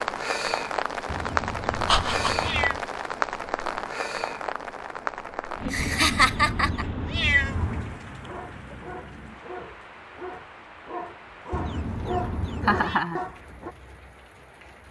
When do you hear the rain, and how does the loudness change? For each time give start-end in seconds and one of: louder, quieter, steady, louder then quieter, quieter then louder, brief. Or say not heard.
0.0-14.8 quieter.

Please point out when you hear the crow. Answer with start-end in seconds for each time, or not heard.
not heard.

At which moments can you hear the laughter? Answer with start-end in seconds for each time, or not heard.
1.9-2.5, 5.7-6.8, 12.7-13.2.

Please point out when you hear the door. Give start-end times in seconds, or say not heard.
not heard.